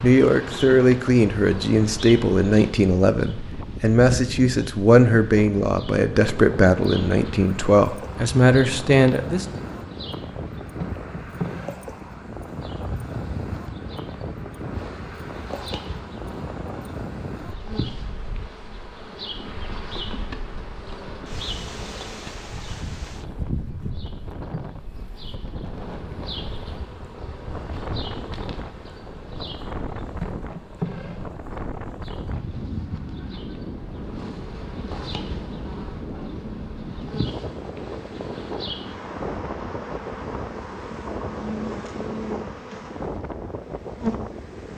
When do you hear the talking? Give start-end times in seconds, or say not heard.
0.0-9.4.